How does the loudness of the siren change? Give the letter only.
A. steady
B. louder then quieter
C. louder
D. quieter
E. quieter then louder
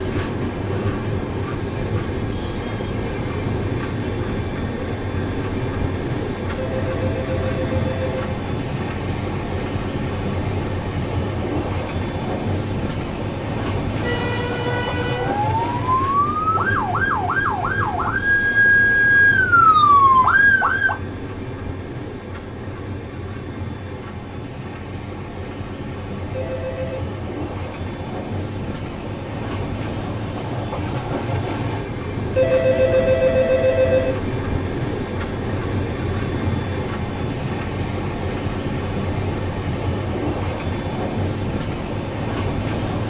C.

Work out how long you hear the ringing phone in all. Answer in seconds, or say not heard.
4 s.